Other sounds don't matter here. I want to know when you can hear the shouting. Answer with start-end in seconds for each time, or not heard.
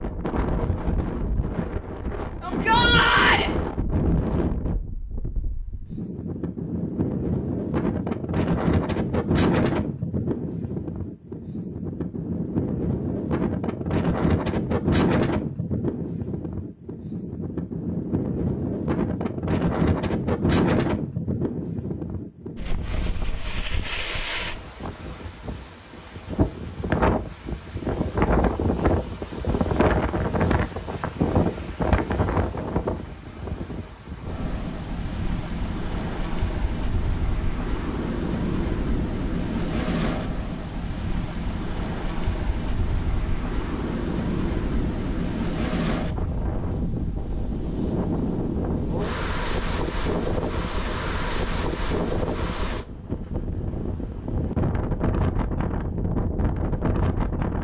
2.4-3.5.